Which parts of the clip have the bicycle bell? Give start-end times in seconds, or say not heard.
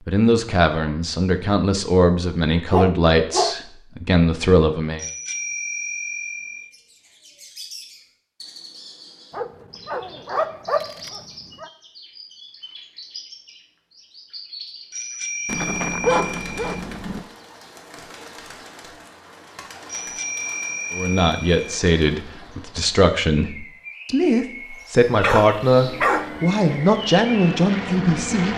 5.0-6.7, 14.9-16.7, 19.9-21.8.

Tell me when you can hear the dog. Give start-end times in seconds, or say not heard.
2.7-3.5, 9.3-11.7, 15.4-17.2, 25.2-26.4.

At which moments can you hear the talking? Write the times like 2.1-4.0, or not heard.
0.1-5.0, 20.9-28.5.